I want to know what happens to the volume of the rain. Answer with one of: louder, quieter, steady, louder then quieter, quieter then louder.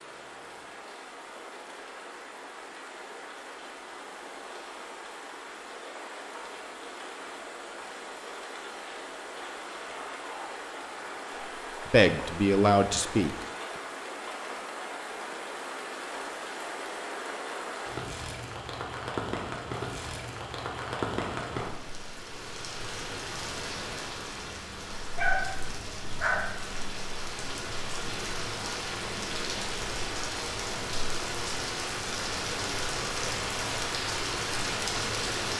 louder.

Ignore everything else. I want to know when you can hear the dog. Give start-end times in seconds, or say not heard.
9.8-11.6, 25.1-26.5.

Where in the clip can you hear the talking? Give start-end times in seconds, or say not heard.
11.9-13.3.